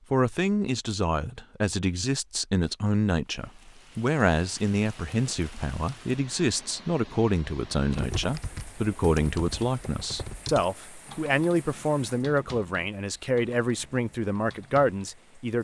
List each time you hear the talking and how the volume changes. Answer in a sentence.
The talking can be heard from 0.1 to 15.5 s, at a steady volume.